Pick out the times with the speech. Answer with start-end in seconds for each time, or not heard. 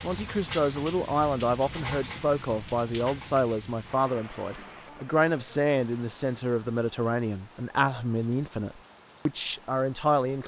0.0-10.4.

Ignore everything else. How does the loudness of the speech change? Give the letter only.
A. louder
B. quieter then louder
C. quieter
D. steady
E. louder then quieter
D.